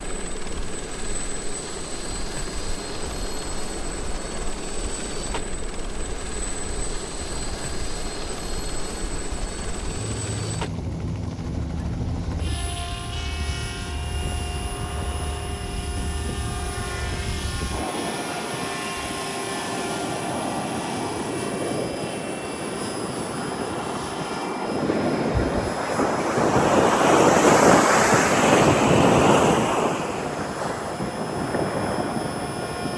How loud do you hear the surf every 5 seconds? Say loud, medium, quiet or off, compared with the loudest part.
quiet, quiet, quiet, quiet, medium, loud, medium.